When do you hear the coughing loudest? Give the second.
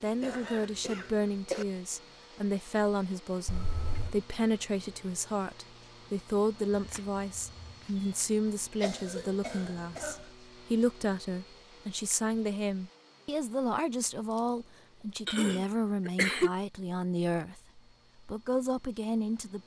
16 s.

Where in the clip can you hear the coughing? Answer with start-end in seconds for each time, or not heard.
0.2-1.6, 8.8-10.2, 15.2-16.6.